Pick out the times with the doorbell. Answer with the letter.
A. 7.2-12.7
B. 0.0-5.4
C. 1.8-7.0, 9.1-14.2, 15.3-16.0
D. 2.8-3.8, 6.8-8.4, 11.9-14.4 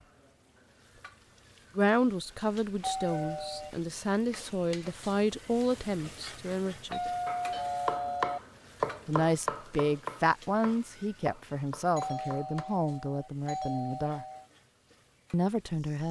D.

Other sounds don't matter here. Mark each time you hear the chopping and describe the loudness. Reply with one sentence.
You can hear the chopping from 7.2 to 12.7 s, getting quieter.